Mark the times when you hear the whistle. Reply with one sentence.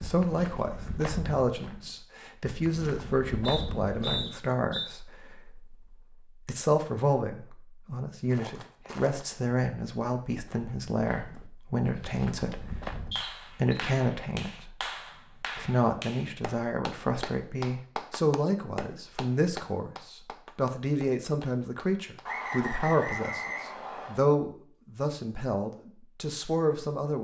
The whistle can be heard from 3.5 to 4.8 s, from 13.1 to 13.8 s and from 22.2 to 24.2 s.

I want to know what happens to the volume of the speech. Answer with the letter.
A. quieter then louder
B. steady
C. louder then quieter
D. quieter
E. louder
B.